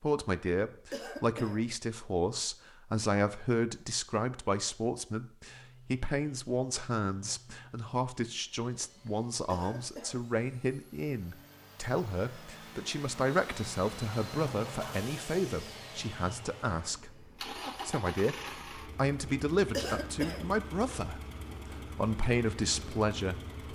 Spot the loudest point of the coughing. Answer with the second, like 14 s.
20 s.